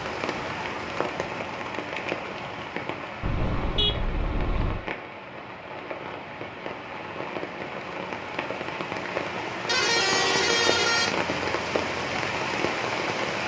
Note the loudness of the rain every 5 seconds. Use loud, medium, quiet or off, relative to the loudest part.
medium, medium, loud.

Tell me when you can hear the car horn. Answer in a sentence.
You can hear the car horn from 3.2 to 4.8 s and from 9.7 to 11.2 s.